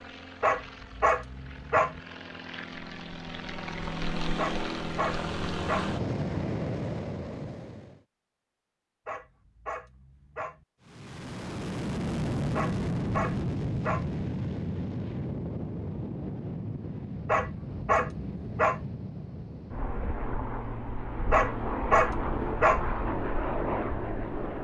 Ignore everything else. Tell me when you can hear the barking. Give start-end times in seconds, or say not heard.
0.4-2.0, 4.3-6.0, 9.1-10.7, 12.6-14.2, 17.2-18.9, 21.3-22.9.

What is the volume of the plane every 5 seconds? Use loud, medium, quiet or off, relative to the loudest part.
medium, loud, loud, medium, loud.